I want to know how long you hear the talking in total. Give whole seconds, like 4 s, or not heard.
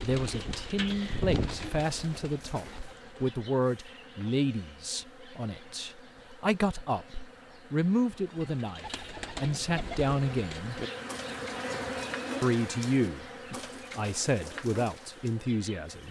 14 s.